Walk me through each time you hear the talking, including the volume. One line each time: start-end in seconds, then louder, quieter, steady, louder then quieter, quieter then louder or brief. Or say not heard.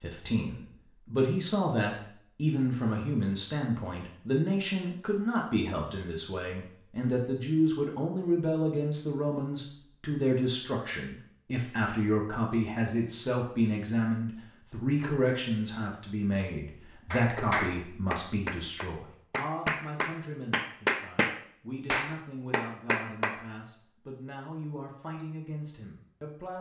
0.0-26.5 quieter.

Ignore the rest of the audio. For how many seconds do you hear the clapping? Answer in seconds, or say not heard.
6 s.